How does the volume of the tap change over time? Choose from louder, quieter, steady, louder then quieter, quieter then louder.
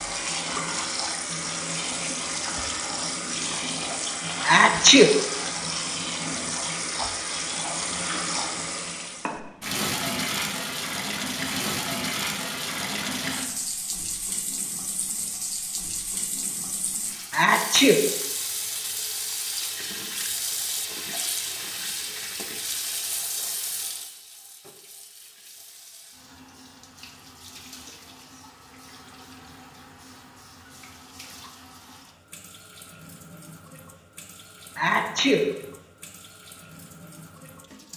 quieter.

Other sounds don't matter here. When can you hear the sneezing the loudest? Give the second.
5 s.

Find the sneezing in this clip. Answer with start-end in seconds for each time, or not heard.
4.5-5.2, 17.3-18.0, 34.8-35.5.